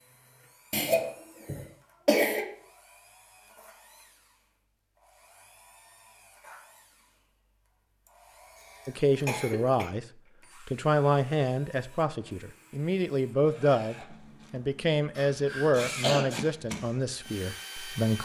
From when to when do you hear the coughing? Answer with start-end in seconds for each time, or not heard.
0.7-2.5, 8.6-9.9, 15.2-16.2.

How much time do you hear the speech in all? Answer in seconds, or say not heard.
9 s.